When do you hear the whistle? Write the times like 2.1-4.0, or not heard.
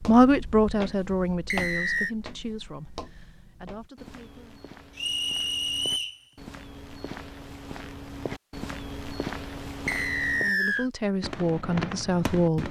1.5-2.1, 5.0-6.2, 9.8-10.9.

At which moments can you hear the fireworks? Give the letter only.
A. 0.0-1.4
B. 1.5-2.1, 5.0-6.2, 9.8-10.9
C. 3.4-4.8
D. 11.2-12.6
D.